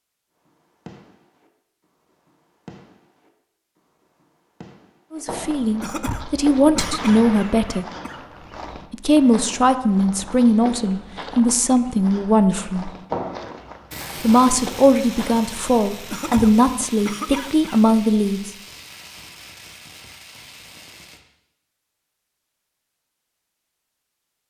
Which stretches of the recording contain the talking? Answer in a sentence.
You can hear the talking from 5.1 to 7.8 s, from 8.9 to 12.9 s and from 14.2 to 18.5 s.